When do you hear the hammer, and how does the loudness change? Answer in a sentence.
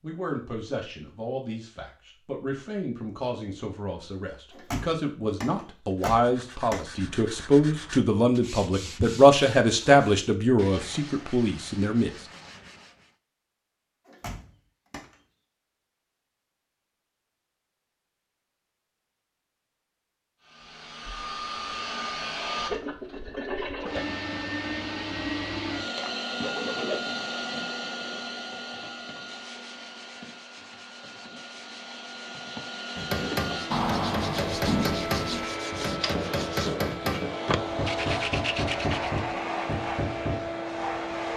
You can hear the hammer from 33.0 to 40.5 s, at a steady volume.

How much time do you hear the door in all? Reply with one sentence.
You can hear the door for 5 seconds altogether.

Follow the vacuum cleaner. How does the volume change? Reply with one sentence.
The loudness of the vacuum cleaner goes down, then up.